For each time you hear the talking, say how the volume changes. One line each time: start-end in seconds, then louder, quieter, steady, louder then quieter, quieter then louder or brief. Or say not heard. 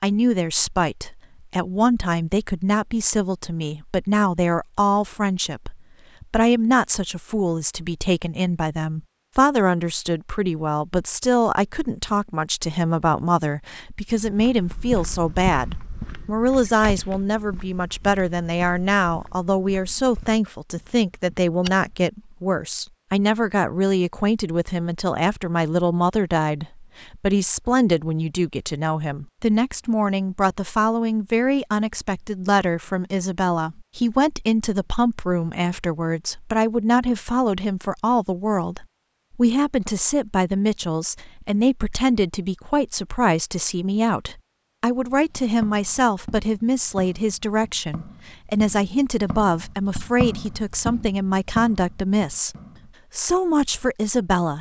0.0-54.5 steady.